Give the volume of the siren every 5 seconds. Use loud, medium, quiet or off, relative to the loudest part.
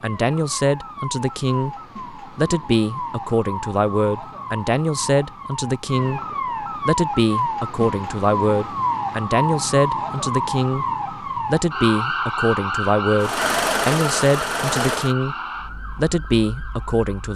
medium, loud, loud, medium.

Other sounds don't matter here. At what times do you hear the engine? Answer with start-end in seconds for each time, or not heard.
13.2-15.2.